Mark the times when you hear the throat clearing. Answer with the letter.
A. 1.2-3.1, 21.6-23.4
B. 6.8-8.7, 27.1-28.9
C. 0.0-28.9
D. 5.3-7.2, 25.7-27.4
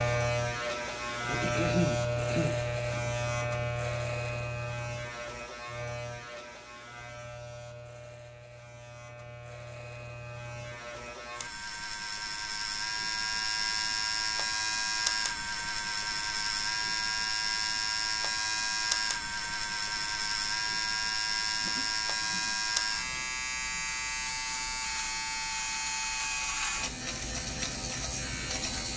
A.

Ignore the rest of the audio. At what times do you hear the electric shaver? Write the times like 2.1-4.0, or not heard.
0.0-28.9.